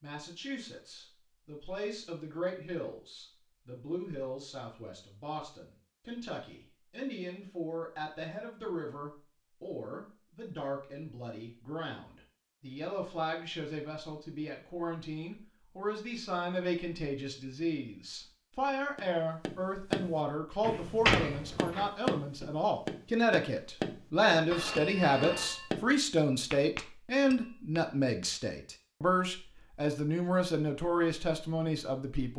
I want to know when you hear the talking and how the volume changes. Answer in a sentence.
You can hear the talking from 0.0 to 32.3 s, getting louder.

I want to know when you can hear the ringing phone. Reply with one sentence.
The ringing phone can be heard from 24.5 to 25.7 s.